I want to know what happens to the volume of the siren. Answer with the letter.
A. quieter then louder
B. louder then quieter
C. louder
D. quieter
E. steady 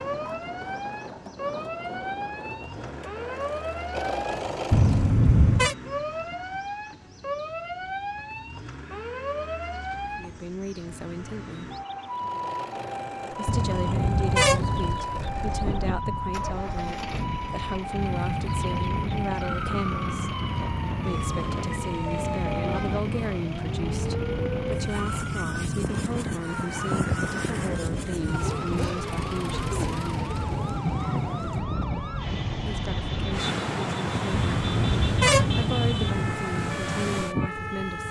E.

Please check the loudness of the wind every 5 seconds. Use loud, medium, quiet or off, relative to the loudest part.
off, off, off, loud, loud, loud, loud, loud.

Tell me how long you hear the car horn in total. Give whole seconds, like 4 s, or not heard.
5 s.